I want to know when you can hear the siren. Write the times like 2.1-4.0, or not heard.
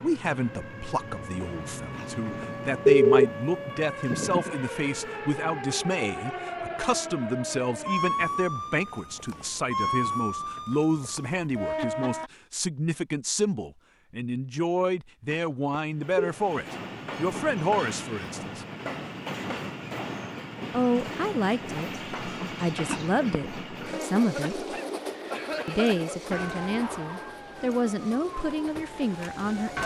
0.0-12.3, 26.3-29.8.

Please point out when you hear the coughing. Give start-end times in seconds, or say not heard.
24.2-26.5.